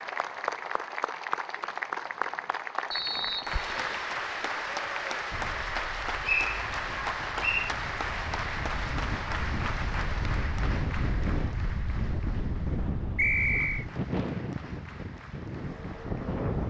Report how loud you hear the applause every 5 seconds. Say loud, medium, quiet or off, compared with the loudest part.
loud, loud, medium, quiet.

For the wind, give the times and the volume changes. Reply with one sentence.
The wind can be heard from 5.3 to 16.6 s, getting louder.